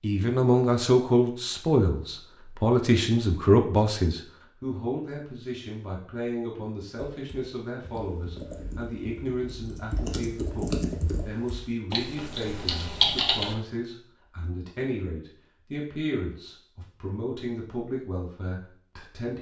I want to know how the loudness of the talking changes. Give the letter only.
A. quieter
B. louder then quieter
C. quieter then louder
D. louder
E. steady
A.